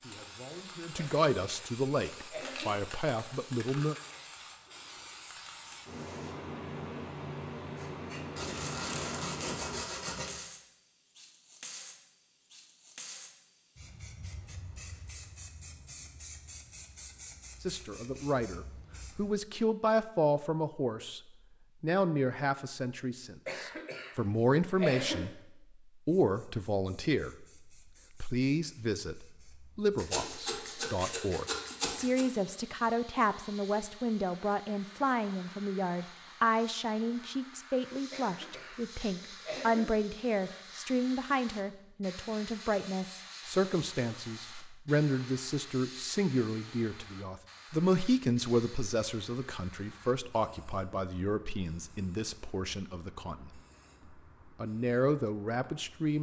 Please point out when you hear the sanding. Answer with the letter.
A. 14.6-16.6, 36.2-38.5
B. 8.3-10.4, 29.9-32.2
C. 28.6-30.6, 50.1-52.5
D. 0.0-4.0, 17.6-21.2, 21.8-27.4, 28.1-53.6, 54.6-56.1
B.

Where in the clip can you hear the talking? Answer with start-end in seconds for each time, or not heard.
0.0-4.0, 17.6-21.2, 21.8-27.4, 28.1-53.6, 54.6-56.1.